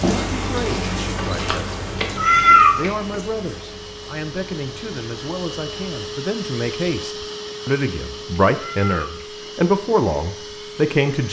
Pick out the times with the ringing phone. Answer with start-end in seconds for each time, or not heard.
1.4-2.0.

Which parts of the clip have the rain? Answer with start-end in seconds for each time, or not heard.
0.0-6.0.